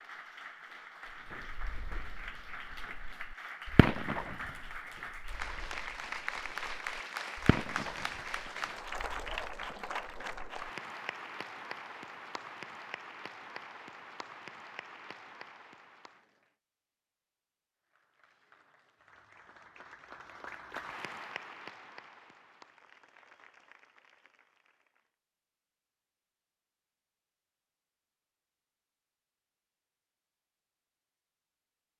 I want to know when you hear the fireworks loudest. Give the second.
4 s.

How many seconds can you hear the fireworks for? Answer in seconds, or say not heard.
9 s.